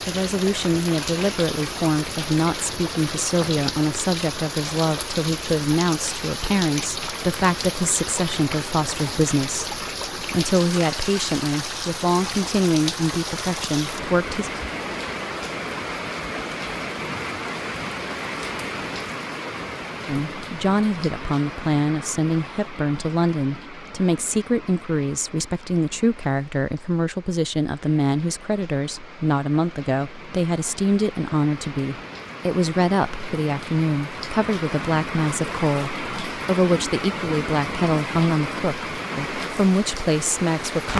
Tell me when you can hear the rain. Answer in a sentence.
You can hear the rain from 0.0 to 40.9 s.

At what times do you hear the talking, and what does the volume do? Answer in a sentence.
You can hear the talking from 0.1 to 14.5 s, at a steady volume; and from 20.1 to 40.9 s, at a steady volume.